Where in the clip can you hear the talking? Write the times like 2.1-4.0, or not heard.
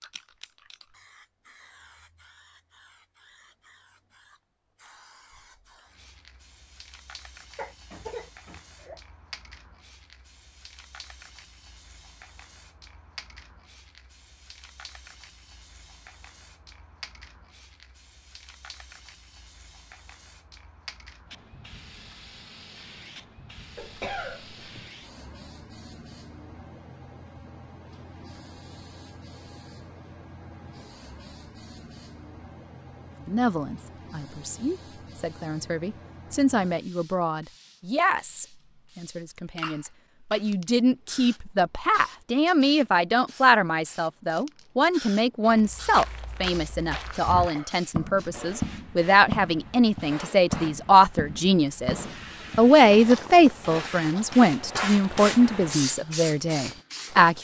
33.2-57.3.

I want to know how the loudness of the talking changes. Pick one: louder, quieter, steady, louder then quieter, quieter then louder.
louder.